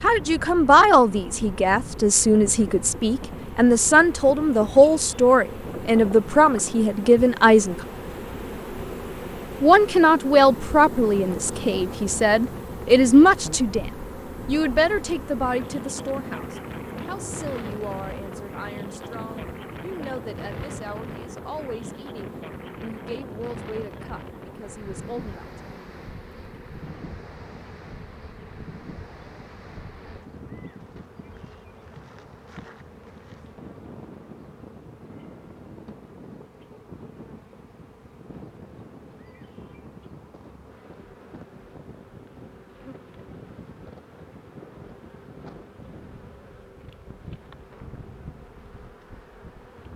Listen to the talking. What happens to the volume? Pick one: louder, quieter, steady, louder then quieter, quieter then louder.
quieter.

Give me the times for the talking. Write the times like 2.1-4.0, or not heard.
0.0-7.8, 9.6-25.4.